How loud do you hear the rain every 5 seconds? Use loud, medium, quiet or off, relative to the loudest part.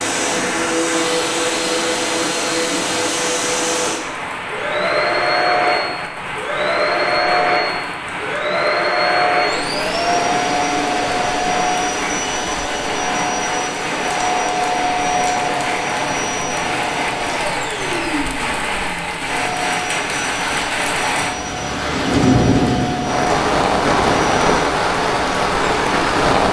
medium, medium, medium, medium, loud, loud.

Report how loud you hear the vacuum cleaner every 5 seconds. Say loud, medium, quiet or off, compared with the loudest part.
loud, loud, loud, medium, medium, off.